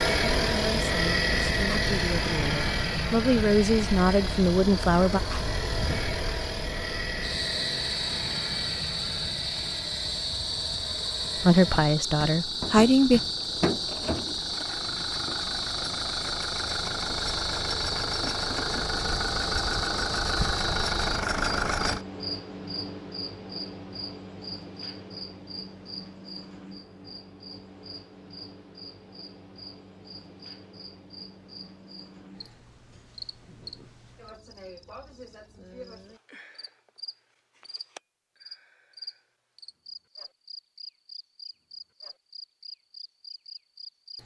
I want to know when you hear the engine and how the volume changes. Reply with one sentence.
You can hear the engine from 0.0 to 22.0 s, getting quieter then louder.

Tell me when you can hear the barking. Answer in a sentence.
The barking can't be heard in this clip.